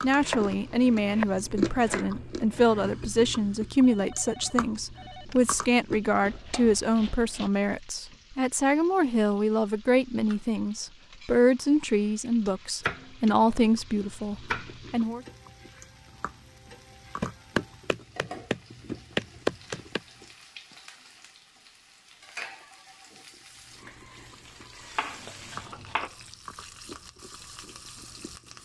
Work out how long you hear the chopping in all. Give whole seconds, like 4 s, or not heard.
10 s.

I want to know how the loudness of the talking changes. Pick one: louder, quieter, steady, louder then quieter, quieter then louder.
steady.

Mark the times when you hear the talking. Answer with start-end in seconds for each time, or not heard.
0.0-15.2.